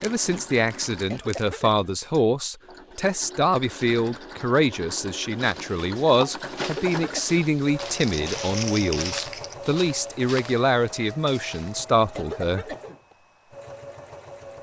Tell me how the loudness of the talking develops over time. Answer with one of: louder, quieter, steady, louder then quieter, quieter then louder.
steady.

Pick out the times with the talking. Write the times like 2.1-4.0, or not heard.
0.0-12.7.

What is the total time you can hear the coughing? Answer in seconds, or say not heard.
2 s.